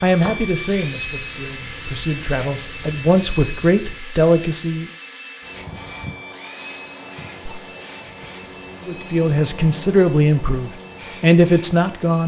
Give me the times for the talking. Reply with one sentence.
You can hear the talking from 0.0 to 4.8 s and from 8.8 to 12.2 s.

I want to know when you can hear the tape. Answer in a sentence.
You can't hear the tape here.